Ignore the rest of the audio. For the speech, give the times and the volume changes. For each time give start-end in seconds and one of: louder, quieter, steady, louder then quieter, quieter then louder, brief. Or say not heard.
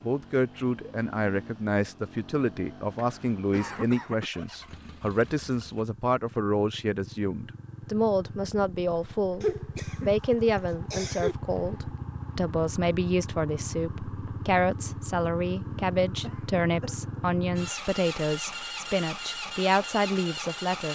0.0-20.9 steady.